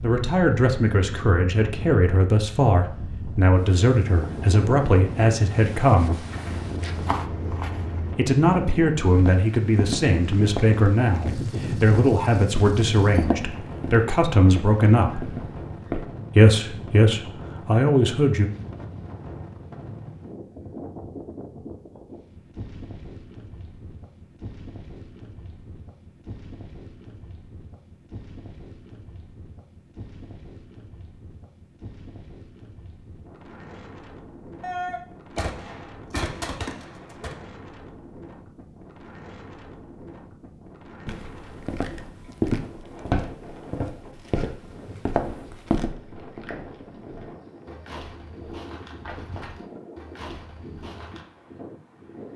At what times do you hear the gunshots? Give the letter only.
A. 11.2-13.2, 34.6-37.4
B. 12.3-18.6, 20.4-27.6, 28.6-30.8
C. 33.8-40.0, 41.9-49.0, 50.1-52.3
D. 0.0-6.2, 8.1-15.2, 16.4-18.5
A.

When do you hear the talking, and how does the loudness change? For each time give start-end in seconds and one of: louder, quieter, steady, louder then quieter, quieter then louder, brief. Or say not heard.
0.0-6.2 steady
8.1-15.2 steady
16.4-18.5 brief.